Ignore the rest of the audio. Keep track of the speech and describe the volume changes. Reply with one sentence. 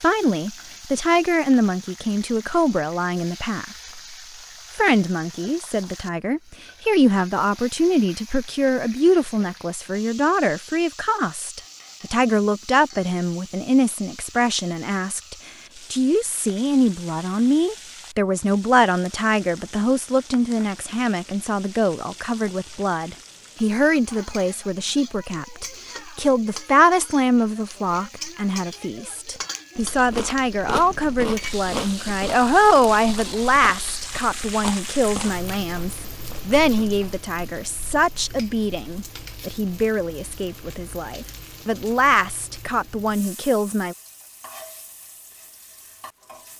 The volume of the speech stays about the same.